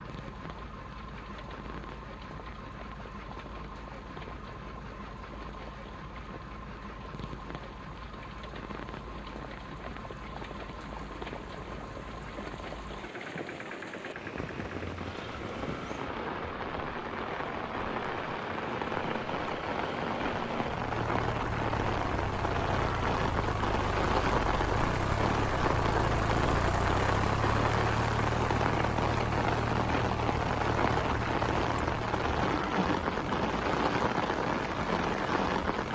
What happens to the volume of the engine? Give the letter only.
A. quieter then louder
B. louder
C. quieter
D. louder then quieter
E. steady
B.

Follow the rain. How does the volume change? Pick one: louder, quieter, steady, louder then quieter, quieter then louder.
louder.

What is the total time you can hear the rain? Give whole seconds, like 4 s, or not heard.
36 s.